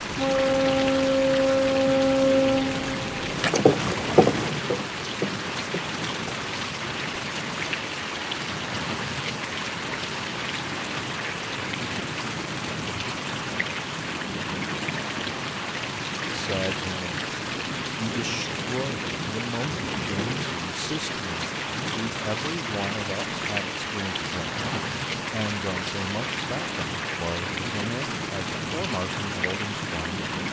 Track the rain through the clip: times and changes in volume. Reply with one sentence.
You can hear the rain from 0.0 to 30.4 s, at a steady volume.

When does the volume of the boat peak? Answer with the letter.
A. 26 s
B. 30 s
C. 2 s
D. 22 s
C.